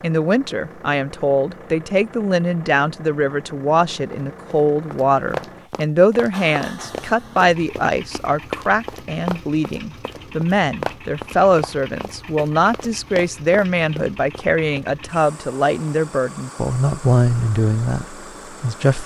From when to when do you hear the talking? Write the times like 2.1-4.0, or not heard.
0.0-19.0.